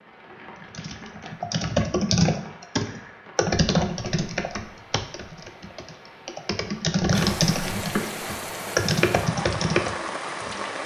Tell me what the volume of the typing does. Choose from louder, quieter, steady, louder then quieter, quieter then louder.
quieter then louder.